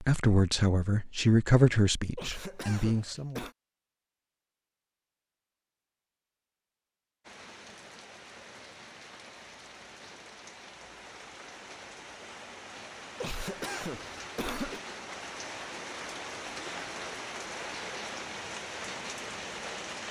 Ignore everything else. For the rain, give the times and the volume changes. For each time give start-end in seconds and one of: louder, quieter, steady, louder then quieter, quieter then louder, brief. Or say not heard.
7.2-20.0 louder.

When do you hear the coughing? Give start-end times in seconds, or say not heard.
2.1-3.5, 13.2-14.8.